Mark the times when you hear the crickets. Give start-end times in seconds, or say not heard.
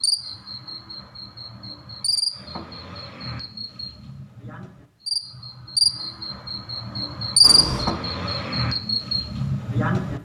0.0-10.2.